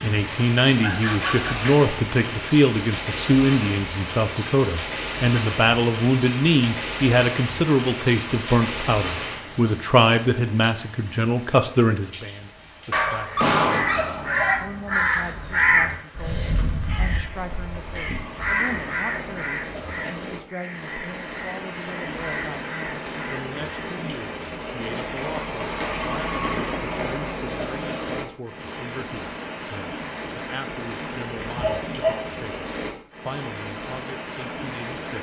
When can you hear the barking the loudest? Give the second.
14 s.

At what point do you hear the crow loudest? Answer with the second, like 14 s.
16 s.